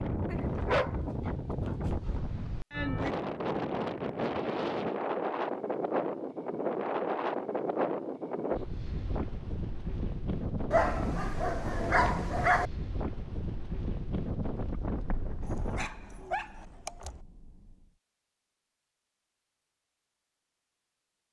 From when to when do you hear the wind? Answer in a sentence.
The wind can be heard from 0.0 to 15.9 s.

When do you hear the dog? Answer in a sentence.
The dog can be heard from 0.2 to 2.1 s, from 10.7 to 12.7 s and from 15.4 to 17.2 s.